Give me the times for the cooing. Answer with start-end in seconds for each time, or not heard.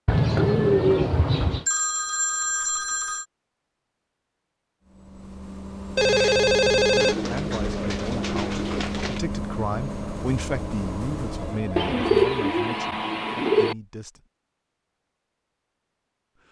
0.1-1.6, 7.0-9.2, 11.8-13.8.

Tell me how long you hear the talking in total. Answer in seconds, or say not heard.
7 s.